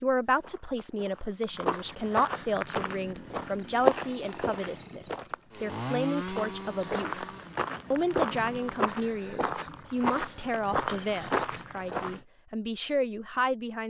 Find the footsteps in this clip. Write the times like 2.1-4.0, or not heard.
0.2-12.2.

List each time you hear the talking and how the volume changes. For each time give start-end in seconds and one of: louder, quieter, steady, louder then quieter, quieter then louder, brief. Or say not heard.
0.0-13.8 steady.